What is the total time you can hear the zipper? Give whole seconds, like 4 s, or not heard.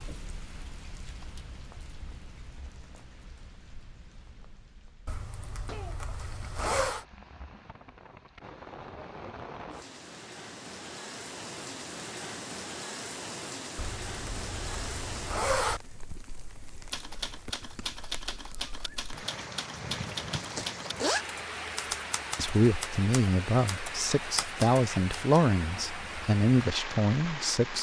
5 s.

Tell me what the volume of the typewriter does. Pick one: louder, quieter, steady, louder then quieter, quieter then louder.
steady.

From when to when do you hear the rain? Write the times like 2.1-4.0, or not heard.
0.0-27.7.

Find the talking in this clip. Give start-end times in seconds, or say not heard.
22.4-27.7.